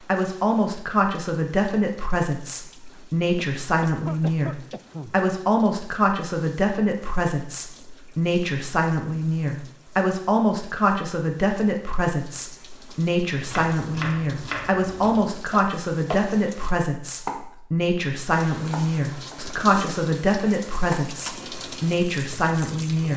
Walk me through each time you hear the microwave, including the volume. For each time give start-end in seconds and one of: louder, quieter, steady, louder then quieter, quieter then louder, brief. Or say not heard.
not heard.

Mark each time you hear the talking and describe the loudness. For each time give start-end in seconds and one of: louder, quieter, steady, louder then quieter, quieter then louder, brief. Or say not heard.
0.1-23.1 steady.